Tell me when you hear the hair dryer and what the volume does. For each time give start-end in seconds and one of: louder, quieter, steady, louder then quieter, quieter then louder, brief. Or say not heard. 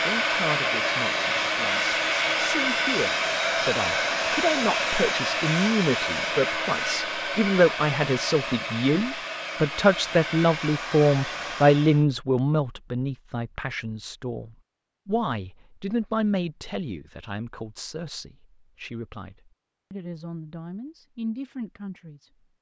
0.0-12.1 quieter.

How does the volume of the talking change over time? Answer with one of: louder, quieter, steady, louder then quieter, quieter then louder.
louder then quieter.